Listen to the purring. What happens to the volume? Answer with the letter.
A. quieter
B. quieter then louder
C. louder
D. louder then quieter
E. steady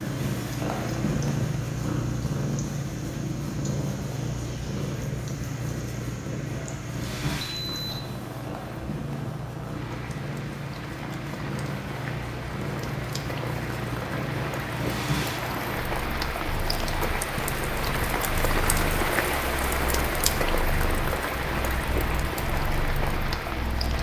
A.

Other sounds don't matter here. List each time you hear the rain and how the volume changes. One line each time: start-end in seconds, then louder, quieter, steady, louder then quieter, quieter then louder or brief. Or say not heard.
0.0-23.9 louder.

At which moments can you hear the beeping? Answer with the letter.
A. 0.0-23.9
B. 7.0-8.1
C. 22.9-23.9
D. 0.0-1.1
B.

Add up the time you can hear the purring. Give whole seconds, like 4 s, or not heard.
24 s.